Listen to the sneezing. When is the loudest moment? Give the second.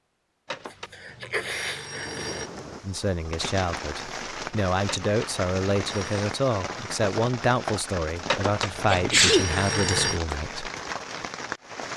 9 s.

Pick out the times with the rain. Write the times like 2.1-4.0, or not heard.
1.9-11.9.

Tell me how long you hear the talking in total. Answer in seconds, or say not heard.
8 s.